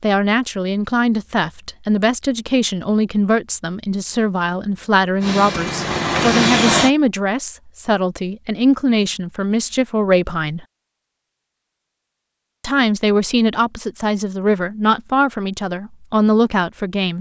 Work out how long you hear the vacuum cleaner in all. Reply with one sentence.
You can hear the vacuum cleaner for 2 seconds altogether.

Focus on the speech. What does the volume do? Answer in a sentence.
The volume of the speech stays about the same.